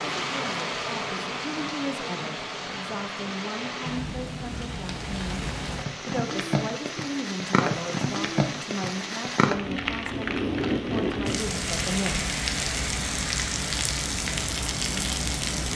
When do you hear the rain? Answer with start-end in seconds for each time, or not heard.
0.0-15.7.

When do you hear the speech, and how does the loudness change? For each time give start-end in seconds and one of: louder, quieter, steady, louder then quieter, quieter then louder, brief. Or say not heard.
0.0-12.3 steady.